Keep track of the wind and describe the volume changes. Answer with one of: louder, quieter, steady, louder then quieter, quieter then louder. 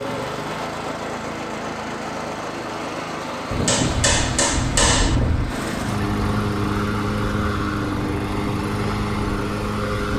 quieter.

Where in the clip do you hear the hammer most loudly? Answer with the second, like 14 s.
5 s.